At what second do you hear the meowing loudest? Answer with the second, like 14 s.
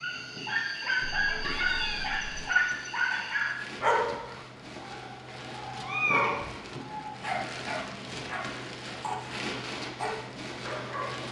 6 s.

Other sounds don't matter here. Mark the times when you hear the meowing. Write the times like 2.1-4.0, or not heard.
1.0-2.5, 5.8-6.5.